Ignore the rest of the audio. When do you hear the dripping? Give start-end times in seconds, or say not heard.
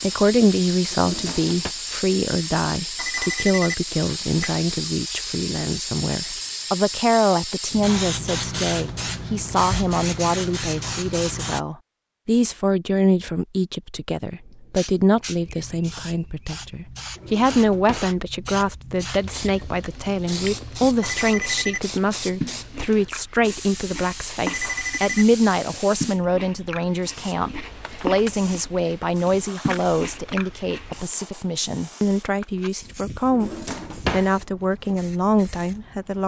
not heard.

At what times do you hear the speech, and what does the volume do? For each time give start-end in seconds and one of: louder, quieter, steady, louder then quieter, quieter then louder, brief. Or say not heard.
0.0-36.2 steady.